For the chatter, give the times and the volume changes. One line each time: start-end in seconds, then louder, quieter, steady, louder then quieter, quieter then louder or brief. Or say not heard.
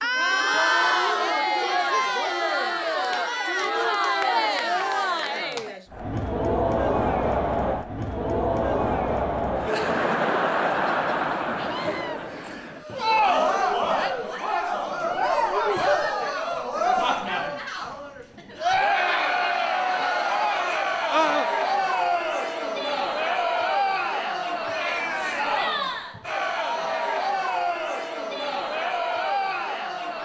0.0-30.2 steady.